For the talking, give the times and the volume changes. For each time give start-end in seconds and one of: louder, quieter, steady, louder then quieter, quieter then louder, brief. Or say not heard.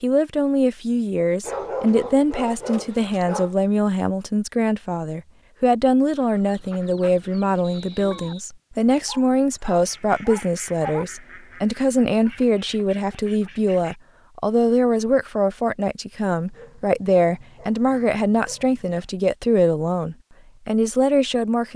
0.0-21.7 steady.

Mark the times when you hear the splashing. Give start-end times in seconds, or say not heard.
not heard.